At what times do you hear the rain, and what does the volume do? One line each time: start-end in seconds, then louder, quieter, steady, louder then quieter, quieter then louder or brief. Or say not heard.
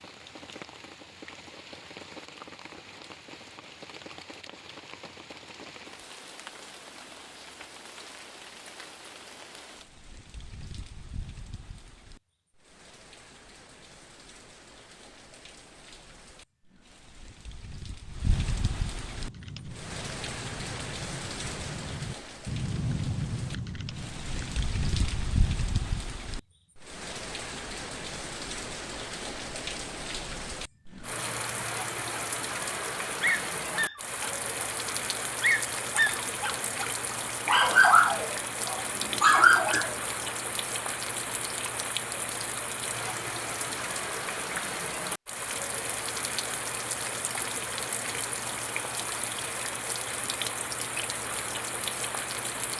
0.0-52.7 louder.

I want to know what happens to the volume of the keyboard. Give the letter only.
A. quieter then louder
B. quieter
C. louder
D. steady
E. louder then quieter
E.